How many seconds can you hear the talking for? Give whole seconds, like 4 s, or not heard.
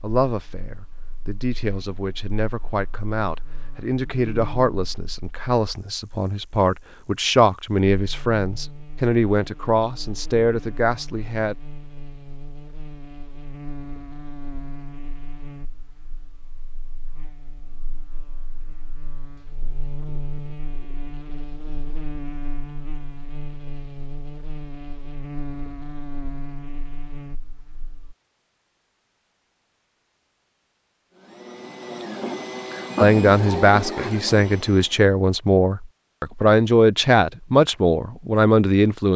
18 s.